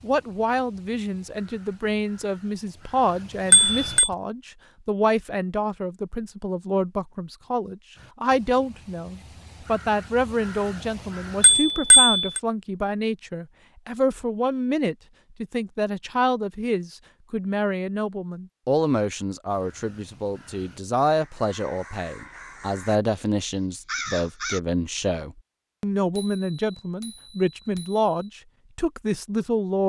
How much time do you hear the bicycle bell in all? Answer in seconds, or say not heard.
4 s.